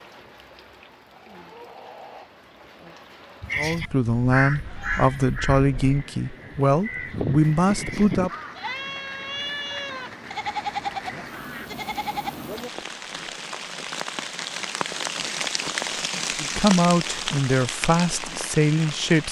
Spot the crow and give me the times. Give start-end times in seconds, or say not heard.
3.5-8.7.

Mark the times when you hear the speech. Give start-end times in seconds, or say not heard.
3.5-8.3, 16.4-19.2.